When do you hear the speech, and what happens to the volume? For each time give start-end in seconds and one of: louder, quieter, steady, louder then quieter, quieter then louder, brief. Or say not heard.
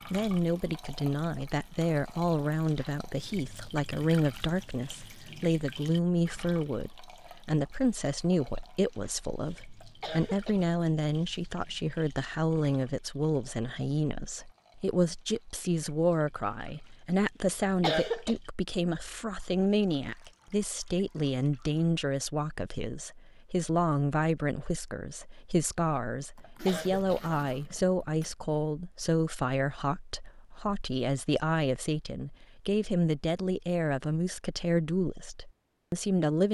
0.1-36.5 steady.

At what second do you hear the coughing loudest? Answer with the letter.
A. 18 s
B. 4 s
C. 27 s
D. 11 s
A.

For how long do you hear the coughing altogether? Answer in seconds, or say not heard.
3 s.